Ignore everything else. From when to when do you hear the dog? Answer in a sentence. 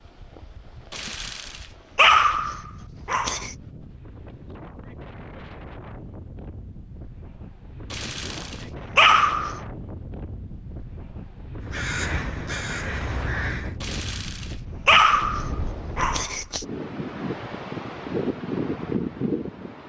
The dog can be heard from 0.9 to 3.5 s, from 7.9 to 9.6 s and from 13.8 to 16.6 s.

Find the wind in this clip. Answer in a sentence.
The wind can be heard from 0.0 to 19.8 s.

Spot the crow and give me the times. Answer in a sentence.
You can hear the crow from 11.7 to 13.8 s.